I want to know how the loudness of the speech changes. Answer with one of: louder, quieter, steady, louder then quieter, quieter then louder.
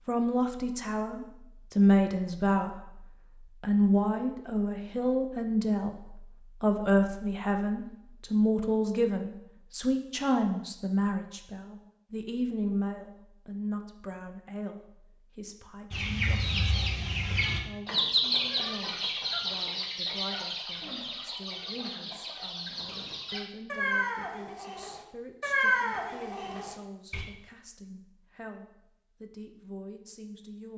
quieter.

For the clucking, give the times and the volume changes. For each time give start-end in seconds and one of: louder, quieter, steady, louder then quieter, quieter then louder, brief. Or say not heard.
15.9-27.2 quieter then louder.